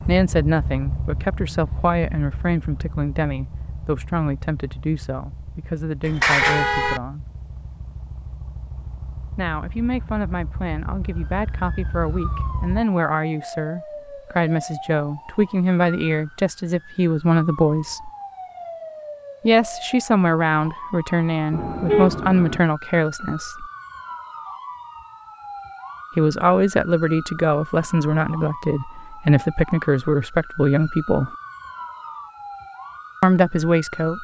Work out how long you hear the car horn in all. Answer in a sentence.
The car horn can be heard for 2 seconds in total.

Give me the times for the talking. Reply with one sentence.
The talking can be heard from 0.1 to 7.2 s, from 9.3 to 18.1 s, from 19.4 to 23.6 s, from 26.1 to 31.3 s and from 33.2 to 34.2 s.